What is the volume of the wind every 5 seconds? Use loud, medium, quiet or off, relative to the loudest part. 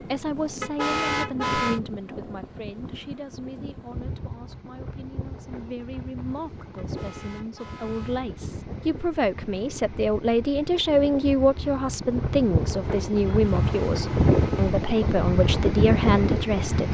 quiet, quiet, loud, loud.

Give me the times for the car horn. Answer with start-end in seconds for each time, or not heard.
0.6-1.8, 6.8-8.2, 13.2-14.8.